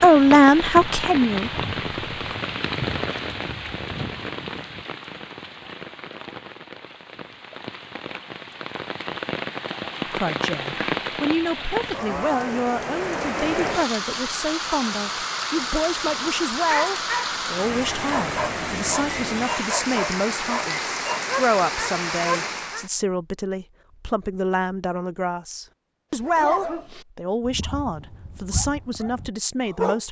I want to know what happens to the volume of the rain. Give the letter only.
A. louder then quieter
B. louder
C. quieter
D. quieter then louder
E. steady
D.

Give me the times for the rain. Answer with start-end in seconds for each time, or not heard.
0.0-22.9.